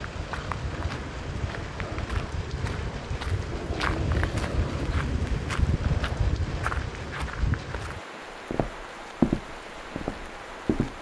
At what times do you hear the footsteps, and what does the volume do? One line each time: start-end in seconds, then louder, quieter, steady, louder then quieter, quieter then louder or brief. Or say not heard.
0.0-10.9 louder.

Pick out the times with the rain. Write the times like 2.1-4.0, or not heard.
0.0-10.9.